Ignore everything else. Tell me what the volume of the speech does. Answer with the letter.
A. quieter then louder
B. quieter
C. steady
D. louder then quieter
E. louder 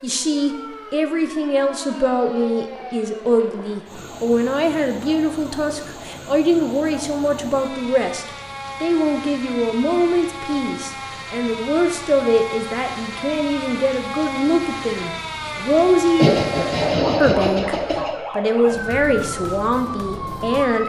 C.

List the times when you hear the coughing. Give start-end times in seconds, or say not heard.
16.1-18.1.